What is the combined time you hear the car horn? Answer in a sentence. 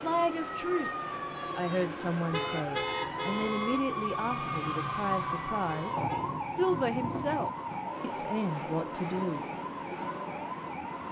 You can hear the car horn for 2 seconds altogether.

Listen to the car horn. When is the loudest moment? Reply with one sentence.
The loudest moment of the car horn is at 3 seconds.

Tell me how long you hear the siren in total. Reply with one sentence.
The siren can be heard for 11 seconds in total.